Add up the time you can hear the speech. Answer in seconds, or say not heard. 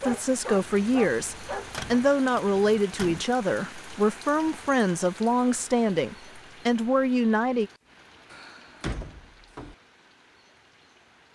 8 s.